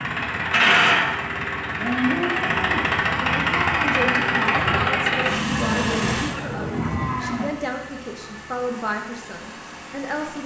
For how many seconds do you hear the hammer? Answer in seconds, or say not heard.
not heard.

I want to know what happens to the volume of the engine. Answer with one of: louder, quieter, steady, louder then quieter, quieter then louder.
quieter.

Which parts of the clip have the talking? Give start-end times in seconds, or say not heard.
3.4-10.4.